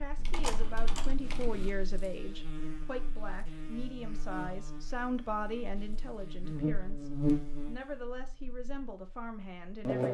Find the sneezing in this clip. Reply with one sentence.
The sneezing can't be heard in this clip.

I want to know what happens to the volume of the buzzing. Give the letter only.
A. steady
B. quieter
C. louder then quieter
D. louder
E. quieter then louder
C.